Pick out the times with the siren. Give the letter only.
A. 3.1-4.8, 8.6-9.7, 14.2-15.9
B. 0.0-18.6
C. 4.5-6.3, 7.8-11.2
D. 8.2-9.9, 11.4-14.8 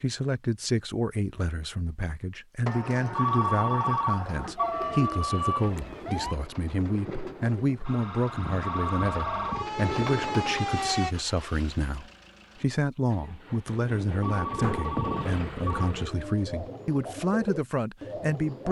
C.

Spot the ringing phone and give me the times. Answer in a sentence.
You can hear the ringing phone from 3.1 to 4.8 s, from 8.6 to 9.7 s and from 14.2 to 15.9 s.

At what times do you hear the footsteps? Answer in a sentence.
The footsteps can't be heard in this clip.